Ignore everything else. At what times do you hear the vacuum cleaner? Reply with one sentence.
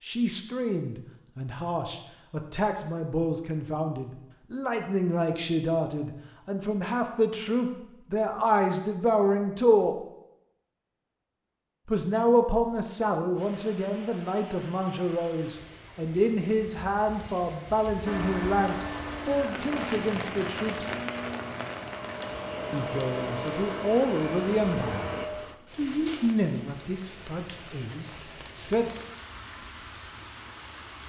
The vacuum cleaner can be heard from 18.1 to 25.3 s.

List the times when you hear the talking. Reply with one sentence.
The talking can be heard from 0.0 to 9.9 s, from 11.8 to 20.9 s, from 22.7 to 25.1 s and from 25.8 to 28.9 s.